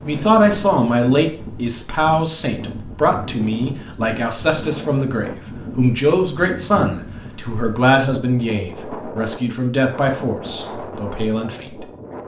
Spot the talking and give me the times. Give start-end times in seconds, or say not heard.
0.0-11.8.